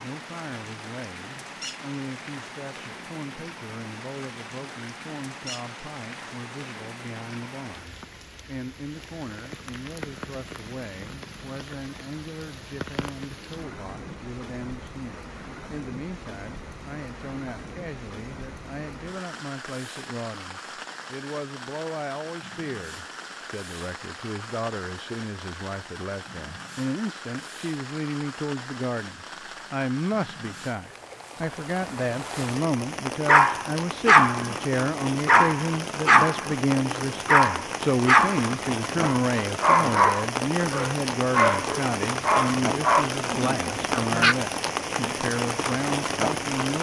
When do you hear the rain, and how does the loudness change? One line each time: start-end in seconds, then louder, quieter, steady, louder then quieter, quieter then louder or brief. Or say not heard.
0.0-46.7 louder.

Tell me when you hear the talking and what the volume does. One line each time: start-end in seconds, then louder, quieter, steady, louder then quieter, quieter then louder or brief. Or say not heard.
0.0-46.7 louder.